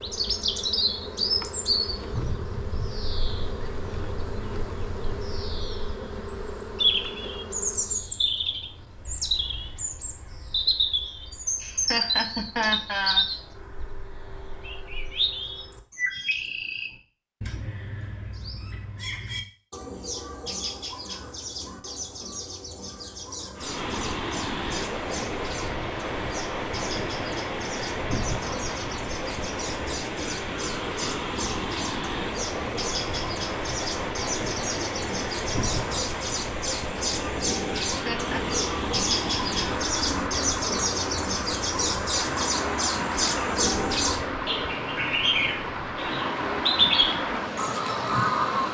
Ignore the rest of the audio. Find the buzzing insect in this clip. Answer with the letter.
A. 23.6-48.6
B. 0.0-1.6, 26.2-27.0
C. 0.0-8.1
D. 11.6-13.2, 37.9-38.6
C.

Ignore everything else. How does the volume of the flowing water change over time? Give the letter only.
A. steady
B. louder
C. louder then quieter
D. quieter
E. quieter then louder
A.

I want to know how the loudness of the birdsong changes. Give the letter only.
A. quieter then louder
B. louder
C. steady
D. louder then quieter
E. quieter
A.